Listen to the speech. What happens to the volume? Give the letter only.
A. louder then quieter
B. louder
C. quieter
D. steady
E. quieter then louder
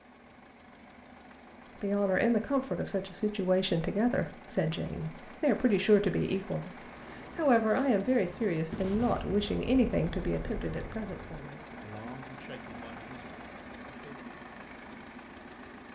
C.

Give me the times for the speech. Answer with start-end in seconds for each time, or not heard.
1.8-14.2.